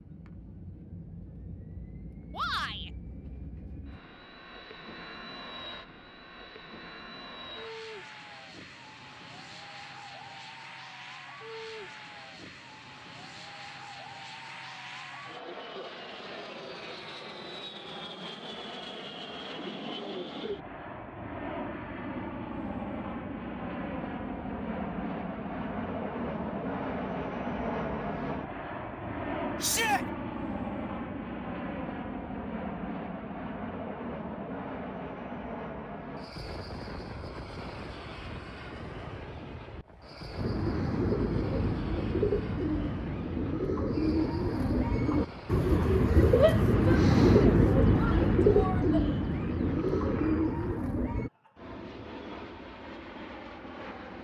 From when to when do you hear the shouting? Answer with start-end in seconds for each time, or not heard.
2.3-2.9, 29.6-30.1, 46.4-49.0.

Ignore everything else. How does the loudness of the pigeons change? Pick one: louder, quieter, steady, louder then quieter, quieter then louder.
louder then quieter.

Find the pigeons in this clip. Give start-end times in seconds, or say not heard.
40.4-51.3.